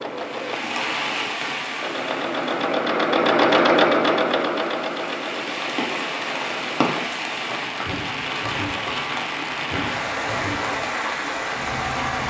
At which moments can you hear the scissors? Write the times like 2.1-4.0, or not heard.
not heard.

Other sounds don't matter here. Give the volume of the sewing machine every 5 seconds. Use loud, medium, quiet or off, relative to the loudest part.
loud, quiet, quiet.